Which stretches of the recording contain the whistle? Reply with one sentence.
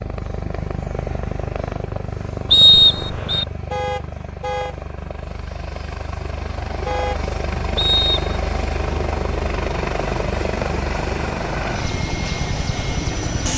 You can hear the whistle from 2.5 to 3.5 s and from 7.8 to 8.3 s.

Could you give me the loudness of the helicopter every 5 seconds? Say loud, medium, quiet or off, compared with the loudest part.
medium, loud, loud.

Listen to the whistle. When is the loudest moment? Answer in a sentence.
The loudest moment of the whistle is at 3 seconds.